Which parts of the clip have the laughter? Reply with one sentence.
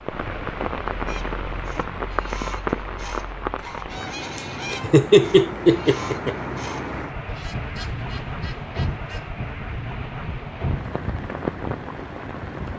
The laughter can be heard from 4.7 to 6.3 s.